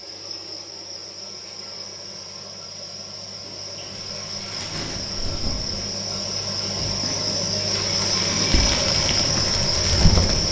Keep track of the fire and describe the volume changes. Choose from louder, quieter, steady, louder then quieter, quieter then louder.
louder.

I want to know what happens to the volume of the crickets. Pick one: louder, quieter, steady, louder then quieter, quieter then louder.
louder.